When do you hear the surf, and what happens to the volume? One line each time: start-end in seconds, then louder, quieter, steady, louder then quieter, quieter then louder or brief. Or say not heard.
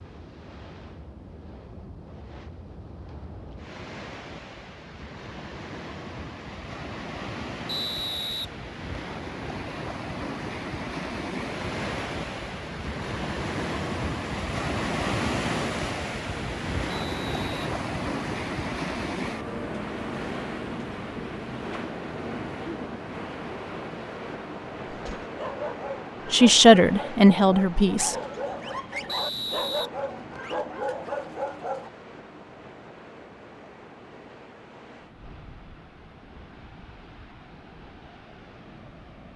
0.0-39.3 louder then quieter.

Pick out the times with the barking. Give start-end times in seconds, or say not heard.
24.9-31.9.